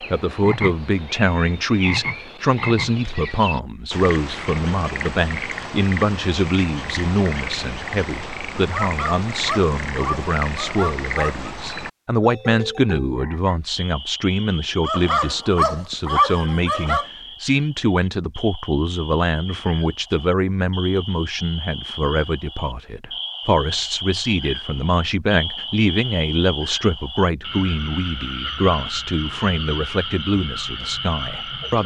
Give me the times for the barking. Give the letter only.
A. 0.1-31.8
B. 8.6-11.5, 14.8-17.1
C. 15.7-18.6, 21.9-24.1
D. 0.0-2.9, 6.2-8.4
B.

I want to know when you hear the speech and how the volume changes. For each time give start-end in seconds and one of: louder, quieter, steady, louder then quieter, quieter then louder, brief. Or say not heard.
0.1-31.8 steady.